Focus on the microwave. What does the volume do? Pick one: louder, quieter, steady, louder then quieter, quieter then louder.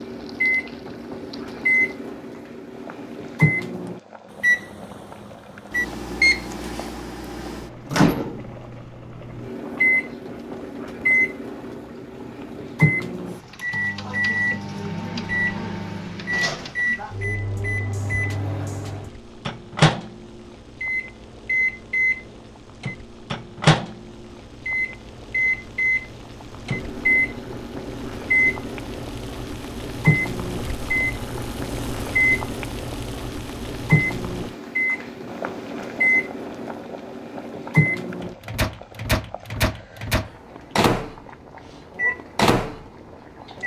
steady.